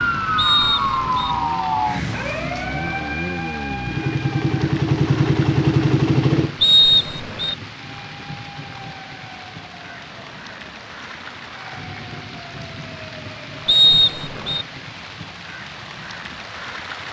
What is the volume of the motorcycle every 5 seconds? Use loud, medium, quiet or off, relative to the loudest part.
medium, loud, off, off.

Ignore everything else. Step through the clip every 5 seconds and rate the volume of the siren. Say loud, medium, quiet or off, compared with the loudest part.
loud, quiet, quiet, off.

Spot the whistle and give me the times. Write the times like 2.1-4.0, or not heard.
0.3-1.4, 6.6-7.5, 13.7-14.7.